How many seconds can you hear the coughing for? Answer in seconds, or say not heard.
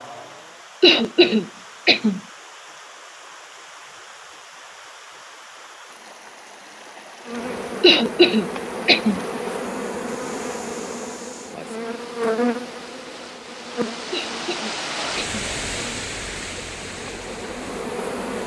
4 s.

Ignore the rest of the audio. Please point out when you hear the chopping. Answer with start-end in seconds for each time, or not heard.
not heard.